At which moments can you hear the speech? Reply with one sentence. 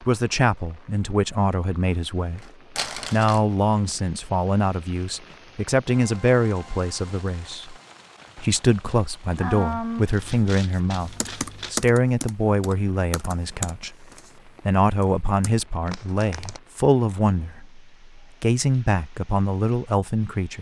You can hear the speech from 0.0 to 2.4 s, from 3.1 to 7.8 s, from 8.3 to 14.1 s and from 14.7 to 20.5 s.